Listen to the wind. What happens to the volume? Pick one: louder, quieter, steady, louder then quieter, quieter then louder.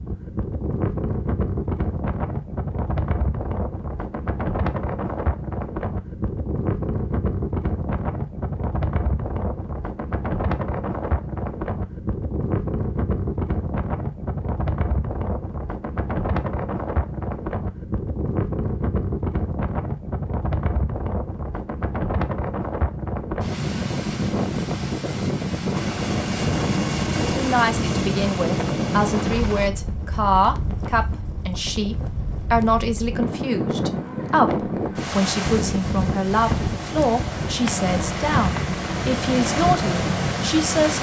steady.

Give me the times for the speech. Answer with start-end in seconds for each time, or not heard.
27.2-40.9.